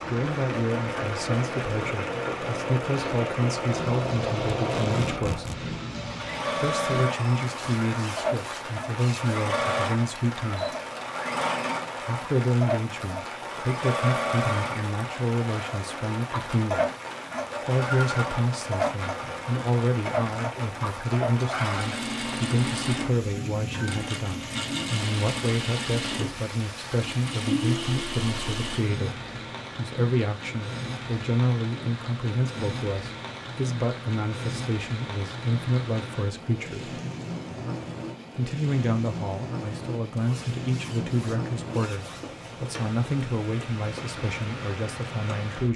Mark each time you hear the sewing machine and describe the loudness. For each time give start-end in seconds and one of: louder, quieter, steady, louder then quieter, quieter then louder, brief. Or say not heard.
0.0-28.8 steady.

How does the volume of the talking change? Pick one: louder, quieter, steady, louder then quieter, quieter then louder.
steady.